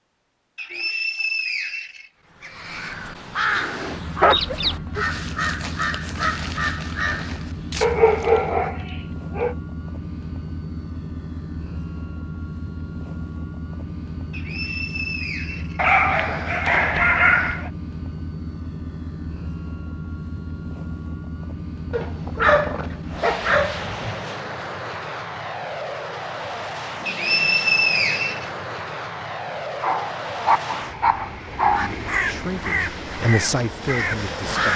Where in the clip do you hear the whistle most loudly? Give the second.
28 s.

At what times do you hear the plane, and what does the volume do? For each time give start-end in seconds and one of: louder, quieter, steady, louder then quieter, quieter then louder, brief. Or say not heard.
3.4-34.7 steady.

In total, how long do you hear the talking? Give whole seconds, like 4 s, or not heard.
3 s.